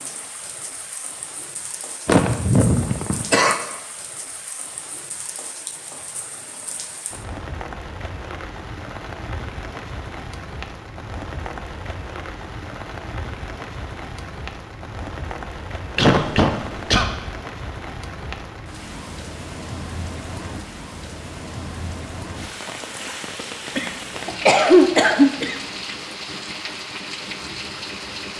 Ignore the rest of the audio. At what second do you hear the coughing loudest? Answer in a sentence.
The loudest moment of the coughing is at 25 seconds.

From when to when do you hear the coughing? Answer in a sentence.
The coughing can be heard from 2.0 to 3.5 s, from 15.9 to 17.1 s and from 23.8 to 25.6 s.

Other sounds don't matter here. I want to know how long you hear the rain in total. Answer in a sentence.
The rain can be heard for 28 seconds in total.